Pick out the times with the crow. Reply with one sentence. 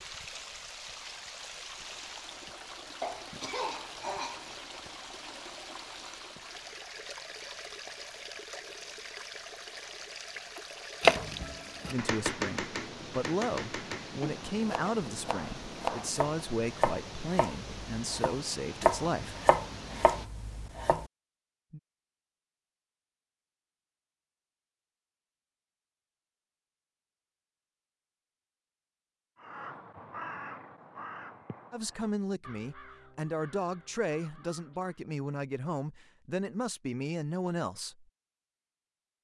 You can hear the crow from 29.4 to 35.0 s.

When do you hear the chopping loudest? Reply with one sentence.
The loudest moment of the chopping is at 11 seconds.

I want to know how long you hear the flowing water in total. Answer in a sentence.
The flowing water can be heard for 20 seconds in total.